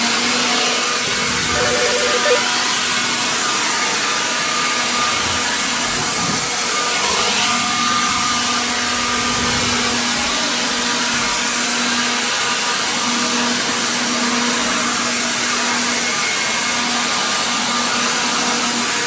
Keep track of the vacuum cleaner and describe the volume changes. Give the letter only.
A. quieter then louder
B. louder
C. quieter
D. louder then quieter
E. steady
E.